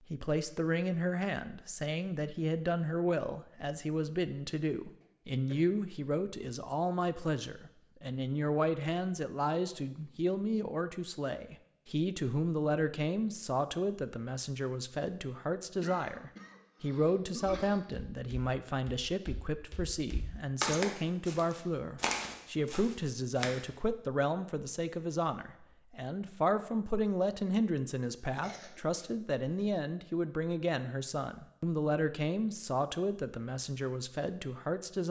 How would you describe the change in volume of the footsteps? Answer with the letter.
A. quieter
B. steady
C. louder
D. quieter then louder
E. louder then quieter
E.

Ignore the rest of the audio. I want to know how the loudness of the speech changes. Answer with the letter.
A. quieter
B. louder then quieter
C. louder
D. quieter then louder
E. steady
E.